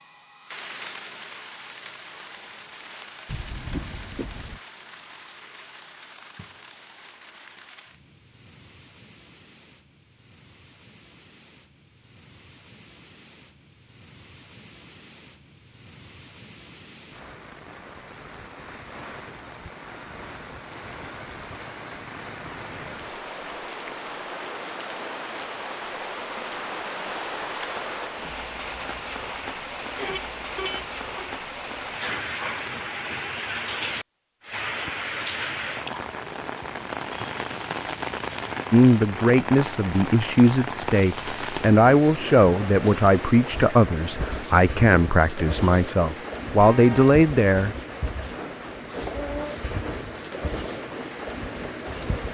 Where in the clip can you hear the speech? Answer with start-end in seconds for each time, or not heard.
38.7-47.8.